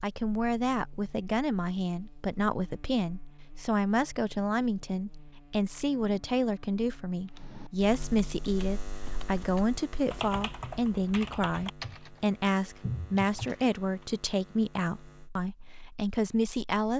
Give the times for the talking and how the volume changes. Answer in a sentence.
The talking can be heard from 0.0 to 16.9 s, at a steady volume.